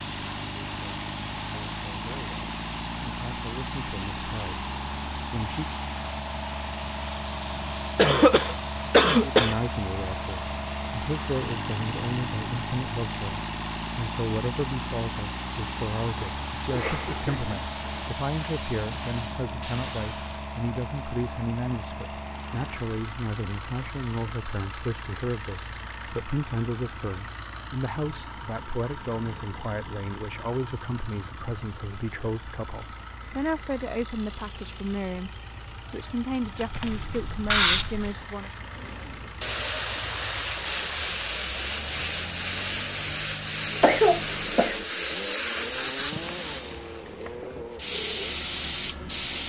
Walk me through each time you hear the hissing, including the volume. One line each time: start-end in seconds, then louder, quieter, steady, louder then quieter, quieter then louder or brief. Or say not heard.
0.0-20.6 steady
36.4-49.4 steady.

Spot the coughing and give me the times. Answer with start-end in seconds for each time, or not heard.
8.0-9.6, 16.7-18.1, 43.8-44.8.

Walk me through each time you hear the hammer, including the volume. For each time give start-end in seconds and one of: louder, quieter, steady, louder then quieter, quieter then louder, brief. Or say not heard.
not heard.